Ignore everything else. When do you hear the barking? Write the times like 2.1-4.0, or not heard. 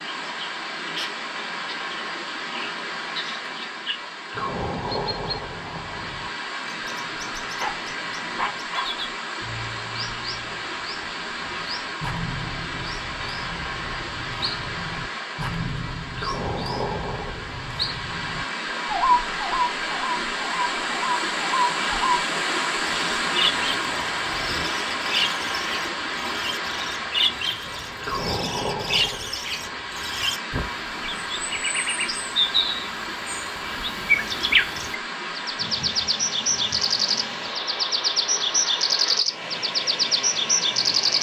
7.5-8.9.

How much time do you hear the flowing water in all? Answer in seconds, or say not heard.
41 s.